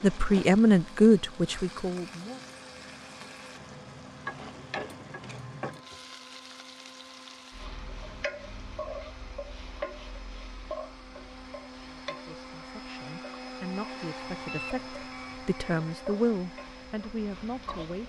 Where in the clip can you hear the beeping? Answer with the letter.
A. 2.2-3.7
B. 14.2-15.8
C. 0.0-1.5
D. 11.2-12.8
B.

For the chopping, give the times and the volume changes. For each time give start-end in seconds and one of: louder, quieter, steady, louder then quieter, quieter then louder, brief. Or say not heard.
not heard.